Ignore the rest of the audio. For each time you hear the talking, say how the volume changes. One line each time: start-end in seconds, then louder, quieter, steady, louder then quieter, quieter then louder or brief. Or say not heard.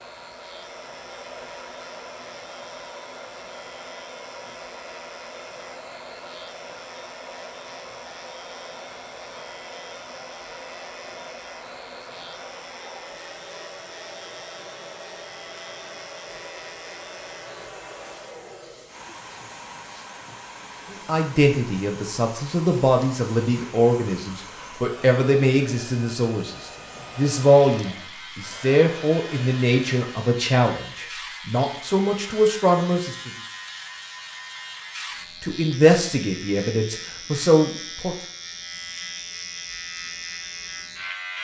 20.9-33.3 steady
35.4-38.1 brief.